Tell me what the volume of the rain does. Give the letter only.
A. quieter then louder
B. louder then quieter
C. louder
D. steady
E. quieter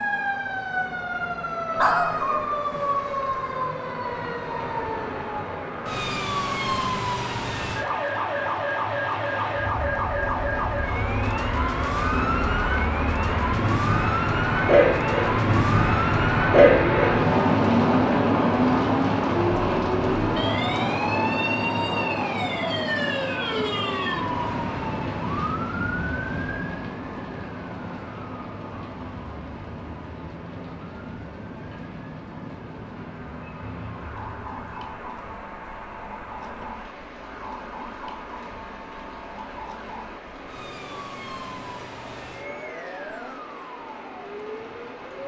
B.